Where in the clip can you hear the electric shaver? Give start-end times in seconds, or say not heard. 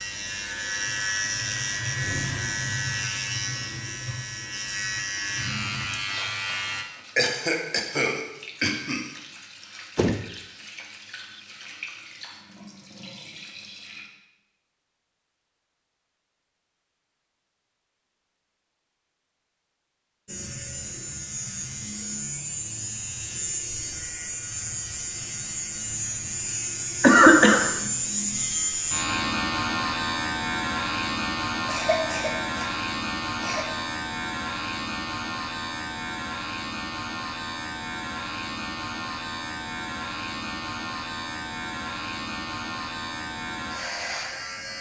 0.0-6.8, 20.2-44.7.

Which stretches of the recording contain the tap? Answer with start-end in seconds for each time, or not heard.
0.0-14.1.